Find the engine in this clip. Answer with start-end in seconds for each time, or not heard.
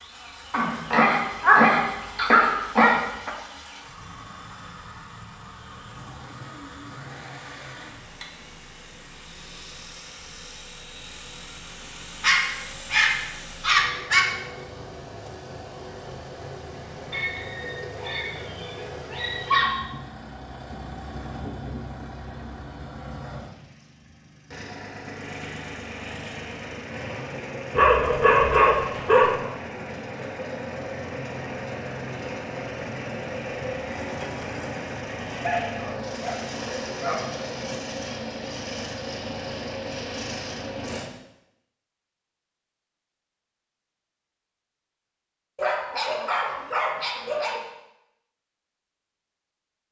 0.0-41.1.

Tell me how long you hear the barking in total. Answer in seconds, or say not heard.
13 s.